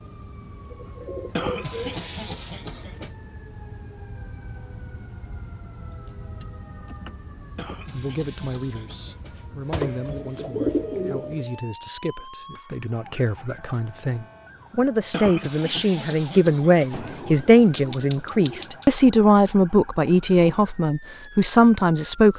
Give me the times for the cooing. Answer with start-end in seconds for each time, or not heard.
0.7-2.2, 9.7-11.4, 16.9-18.9.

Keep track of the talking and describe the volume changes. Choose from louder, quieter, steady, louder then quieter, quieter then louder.
louder.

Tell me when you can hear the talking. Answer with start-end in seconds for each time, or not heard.
7.9-22.3.